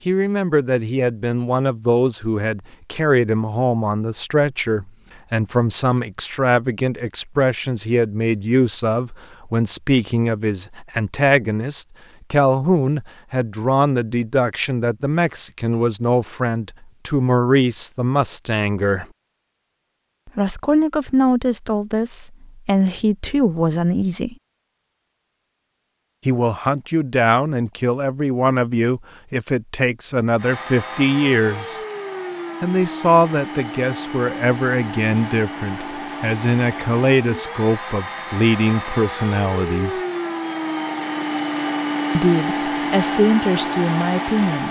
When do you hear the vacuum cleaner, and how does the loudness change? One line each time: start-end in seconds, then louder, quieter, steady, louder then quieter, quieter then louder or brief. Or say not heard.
30.4-44.6 louder.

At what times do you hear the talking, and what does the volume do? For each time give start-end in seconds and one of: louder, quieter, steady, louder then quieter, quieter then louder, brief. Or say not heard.
0.1-19.1 steady
20.2-24.4 quieter then louder
26.2-31.8 steady
32.6-40.0 steady
42.1-44.6 brief.